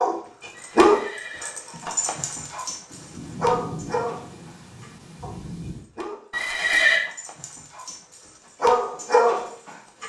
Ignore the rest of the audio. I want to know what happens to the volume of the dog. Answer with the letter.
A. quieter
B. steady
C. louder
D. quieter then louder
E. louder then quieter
D.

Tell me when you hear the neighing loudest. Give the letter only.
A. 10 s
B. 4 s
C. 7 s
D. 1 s
C.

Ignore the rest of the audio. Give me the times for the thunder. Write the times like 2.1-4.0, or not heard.
2.9-5.8.